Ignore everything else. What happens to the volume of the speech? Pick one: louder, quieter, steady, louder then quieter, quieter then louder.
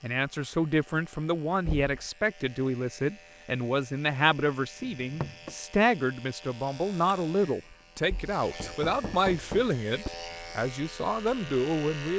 steady.